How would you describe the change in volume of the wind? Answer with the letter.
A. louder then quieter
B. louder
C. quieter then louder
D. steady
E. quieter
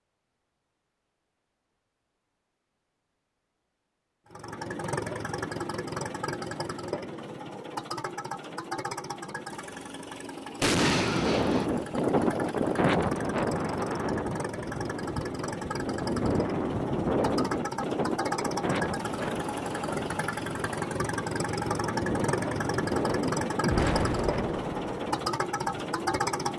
E.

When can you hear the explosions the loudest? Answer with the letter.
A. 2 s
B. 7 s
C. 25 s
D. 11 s
D.